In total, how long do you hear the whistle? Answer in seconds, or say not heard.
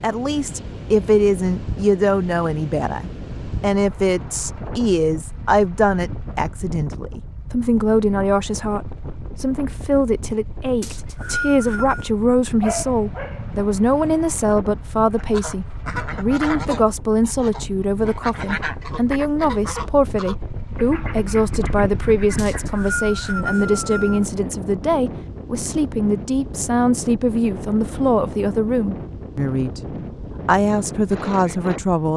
3 s.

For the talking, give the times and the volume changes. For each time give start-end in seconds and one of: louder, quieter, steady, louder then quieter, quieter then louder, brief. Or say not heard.
0.0-29.8 steady
30.4-32.1 brief.